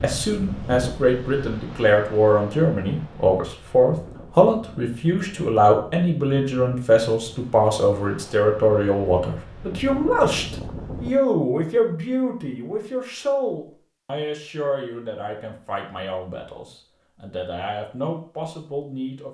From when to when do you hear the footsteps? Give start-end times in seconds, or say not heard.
not heard.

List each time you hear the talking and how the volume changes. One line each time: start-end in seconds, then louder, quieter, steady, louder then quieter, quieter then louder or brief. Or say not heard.
0.0-19.2 quieter.